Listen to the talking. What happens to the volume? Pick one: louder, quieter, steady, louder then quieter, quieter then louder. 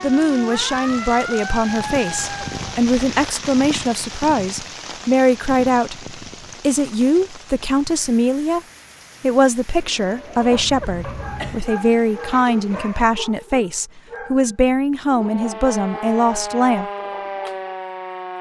steady.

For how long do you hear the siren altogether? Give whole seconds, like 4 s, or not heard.
6 s.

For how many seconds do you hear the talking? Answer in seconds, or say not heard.
16 s.